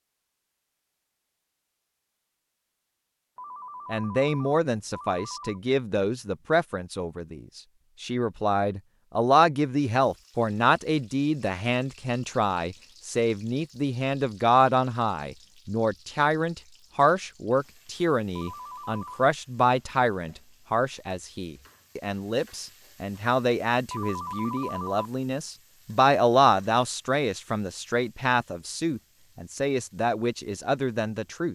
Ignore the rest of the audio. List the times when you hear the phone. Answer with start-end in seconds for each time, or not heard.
3.4-5.6, 18.4-19.2, 23.9-25.0.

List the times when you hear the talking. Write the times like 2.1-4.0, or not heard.
3.9-31.5.